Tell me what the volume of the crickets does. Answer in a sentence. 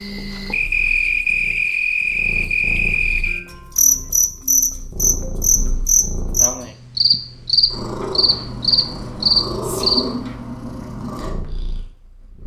The volume of the crickets stays about the same.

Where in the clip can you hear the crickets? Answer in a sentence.
You can hear the crickets from 0.0 to 10.1 s.